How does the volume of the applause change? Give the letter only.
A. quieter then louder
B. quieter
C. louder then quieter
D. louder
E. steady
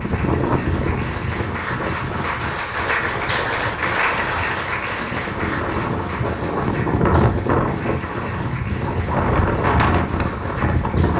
C.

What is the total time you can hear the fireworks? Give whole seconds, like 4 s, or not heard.
not heard.